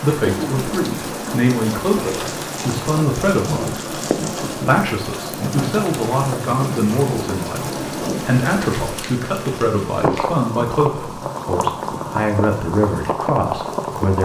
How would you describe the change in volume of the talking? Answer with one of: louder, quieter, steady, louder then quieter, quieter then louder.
steady.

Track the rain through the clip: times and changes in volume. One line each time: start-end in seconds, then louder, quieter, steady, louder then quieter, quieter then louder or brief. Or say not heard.
0.0-14.2 steady.